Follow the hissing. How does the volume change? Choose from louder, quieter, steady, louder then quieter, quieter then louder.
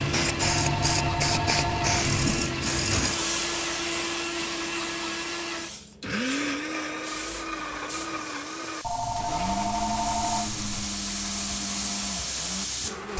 quieter then louder.